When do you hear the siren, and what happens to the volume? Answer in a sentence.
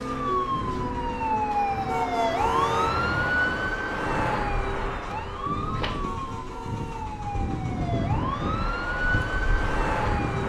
You can hear the siren from 0.0 to 10.4 s, getting quieter then louder.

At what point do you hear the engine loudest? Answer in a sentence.
The volume of the engine peaks at 8 seconds.